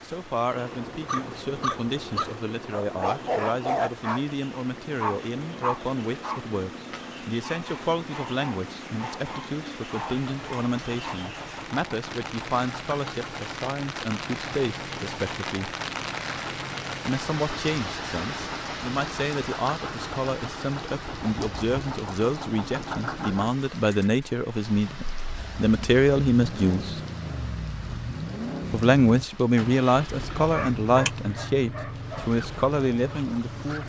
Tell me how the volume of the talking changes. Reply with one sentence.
The volume of the talking goes up.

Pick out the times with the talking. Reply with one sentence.
You can hear the talking from 0.0 to 15.7 s, from 17.1 to 27.0 s and from 28.7 to 33.8 s.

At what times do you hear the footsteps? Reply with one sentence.
The footsteps can't be heard in this clip.